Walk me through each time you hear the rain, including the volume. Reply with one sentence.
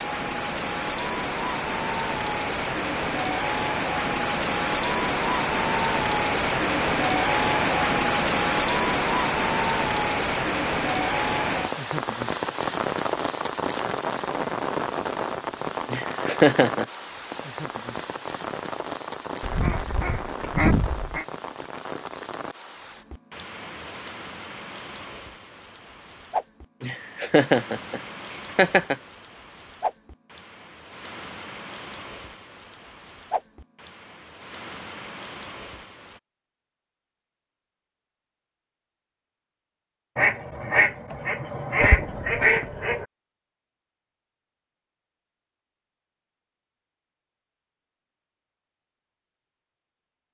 The rain can be heard from 0.0 to 36.2 s, getting quieter.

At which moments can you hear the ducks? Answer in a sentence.
You can hear the ducks from 19.4 to 21.2 s and from 40.1 to 43.0 s.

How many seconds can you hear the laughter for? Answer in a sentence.
The laughter can be heard for 3 seconds in total.